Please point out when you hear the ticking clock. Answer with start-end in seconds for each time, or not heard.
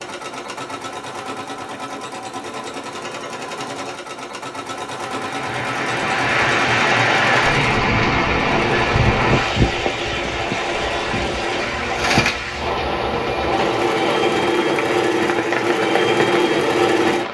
not heard.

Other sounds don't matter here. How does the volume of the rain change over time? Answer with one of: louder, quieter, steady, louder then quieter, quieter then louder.
quieter.